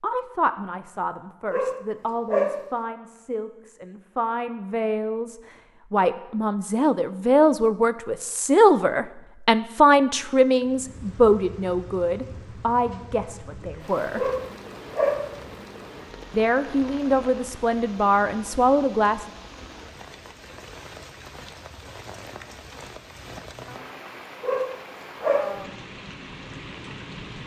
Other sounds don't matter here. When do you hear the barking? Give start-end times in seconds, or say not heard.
1.5-2.7, 14.2-15.3, 24.4-25.6.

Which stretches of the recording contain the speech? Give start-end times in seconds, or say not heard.
0.0-14.3, 16.3-19.2.